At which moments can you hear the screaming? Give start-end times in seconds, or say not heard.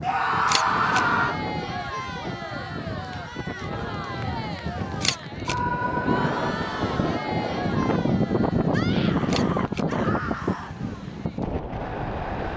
0.0-1.4, 5.5-6.5, 8.7-10.8.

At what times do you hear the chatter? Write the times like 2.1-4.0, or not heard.
0.1-12.5.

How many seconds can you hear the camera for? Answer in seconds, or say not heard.
2 s.